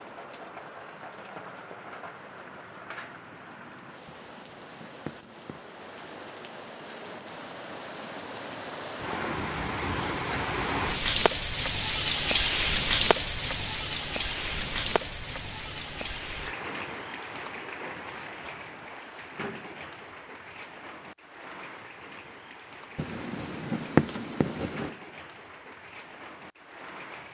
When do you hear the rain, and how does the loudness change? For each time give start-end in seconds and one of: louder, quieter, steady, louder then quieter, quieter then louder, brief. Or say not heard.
0.0-27.2 louder then quieter.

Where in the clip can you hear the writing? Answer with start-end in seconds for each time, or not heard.
4.0-5.7, 22.9-24.9.